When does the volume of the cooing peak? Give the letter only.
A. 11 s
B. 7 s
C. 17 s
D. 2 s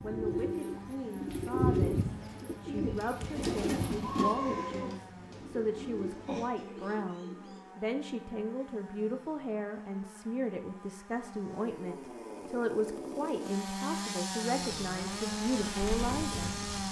D.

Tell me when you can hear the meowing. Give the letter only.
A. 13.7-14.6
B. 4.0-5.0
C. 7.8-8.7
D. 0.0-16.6
B.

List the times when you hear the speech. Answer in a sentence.
You can hear the speech from 0.0 to 16.6 s.